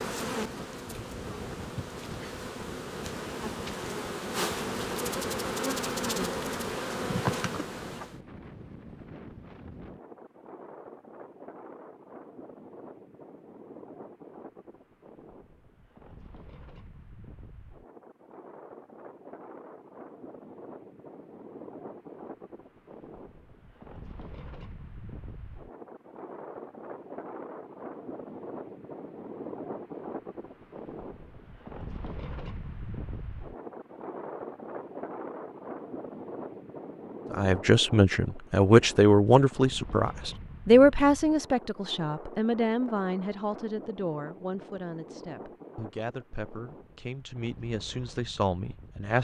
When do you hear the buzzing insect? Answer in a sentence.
The buzzing insect can be heard from 0.0 to 8.2 s.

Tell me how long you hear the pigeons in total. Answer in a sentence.
You can't hear the pigeons here.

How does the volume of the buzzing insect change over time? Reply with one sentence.
The loudness of the buzzing insect goes up.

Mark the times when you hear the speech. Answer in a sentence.
The speech can be heard from 37.3 to 49.1 s.